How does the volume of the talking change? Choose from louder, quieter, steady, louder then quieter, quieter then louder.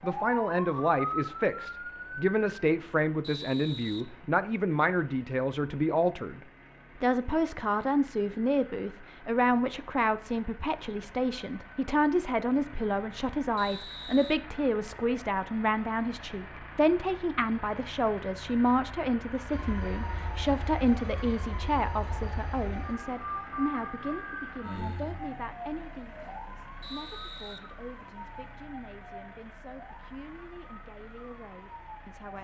quieter.